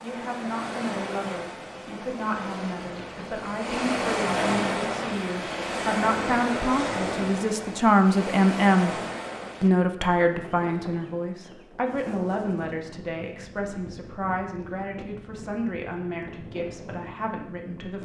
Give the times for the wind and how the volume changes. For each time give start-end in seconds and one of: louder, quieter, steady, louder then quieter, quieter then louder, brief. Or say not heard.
0.0-17.9 louder then quieter.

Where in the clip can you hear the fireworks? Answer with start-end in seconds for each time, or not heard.
not heard.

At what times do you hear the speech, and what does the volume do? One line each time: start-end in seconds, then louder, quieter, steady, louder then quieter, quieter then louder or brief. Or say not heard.
0.0-8.9 louder
9.6-17.9 quieter.